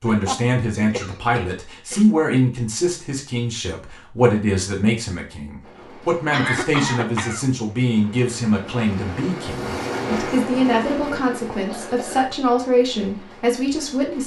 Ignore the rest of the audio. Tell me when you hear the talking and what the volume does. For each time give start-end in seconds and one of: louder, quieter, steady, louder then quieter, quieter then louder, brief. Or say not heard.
0.0-14.2 steady.